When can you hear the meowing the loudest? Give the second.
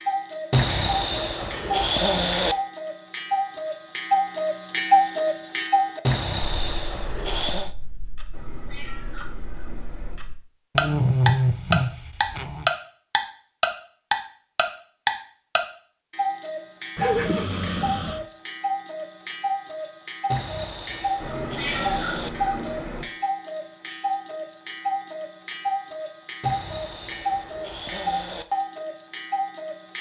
22 s.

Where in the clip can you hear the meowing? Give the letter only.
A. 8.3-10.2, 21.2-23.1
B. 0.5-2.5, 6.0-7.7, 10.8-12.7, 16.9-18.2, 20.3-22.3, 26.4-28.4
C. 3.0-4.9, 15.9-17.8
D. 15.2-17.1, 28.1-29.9
A.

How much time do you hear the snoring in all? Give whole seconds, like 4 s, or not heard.
11 s.